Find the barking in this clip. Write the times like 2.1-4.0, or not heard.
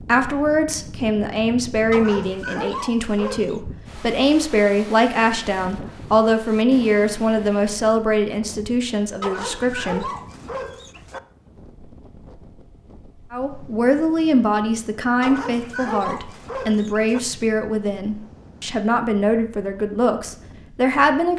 1.9-3.6, 9.2-11.2, 15.2-17.2.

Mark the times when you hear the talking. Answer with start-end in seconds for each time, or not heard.
0.0-10.1, 13.3-21.3.